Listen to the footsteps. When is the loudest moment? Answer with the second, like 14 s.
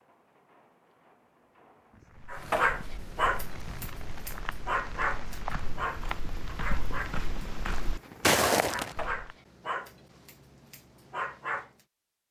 8 s.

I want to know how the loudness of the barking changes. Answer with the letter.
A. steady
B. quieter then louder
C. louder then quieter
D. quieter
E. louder
D.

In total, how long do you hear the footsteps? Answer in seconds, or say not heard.
7 s.